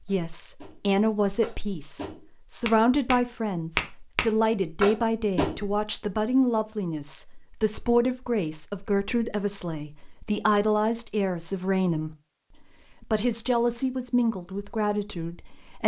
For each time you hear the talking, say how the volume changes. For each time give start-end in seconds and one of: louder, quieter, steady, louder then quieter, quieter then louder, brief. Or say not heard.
0.1-12.2 steady
13.0-15.8 brief.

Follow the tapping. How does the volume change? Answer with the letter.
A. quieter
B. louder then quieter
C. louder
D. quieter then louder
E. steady
C.